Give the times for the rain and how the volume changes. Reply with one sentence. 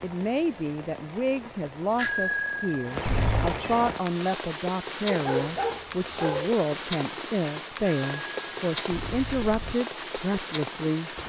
You can hear the rain from 0.0 to 11.2 s, getting louder.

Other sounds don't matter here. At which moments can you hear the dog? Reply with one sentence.
You can hear the dog from 5.0 to 6.5 s.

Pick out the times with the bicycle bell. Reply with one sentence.
The bicycle bell can be heard from 1.9 to 3.5 s and from 7.8 to 9.8 s.